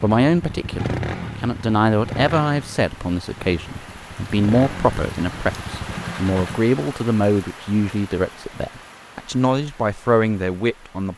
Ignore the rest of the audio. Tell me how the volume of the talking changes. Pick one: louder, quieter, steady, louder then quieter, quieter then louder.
steady.